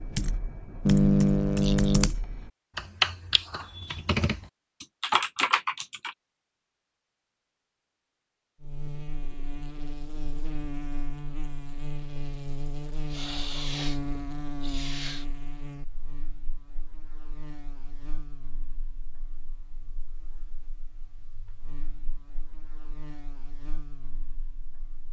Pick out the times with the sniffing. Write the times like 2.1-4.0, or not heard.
0.8-2.1, 13.1-14.0, 14.6-15.2.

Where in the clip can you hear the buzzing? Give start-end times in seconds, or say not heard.
8.6-25.0.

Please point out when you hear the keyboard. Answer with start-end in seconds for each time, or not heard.
0.0-6.2.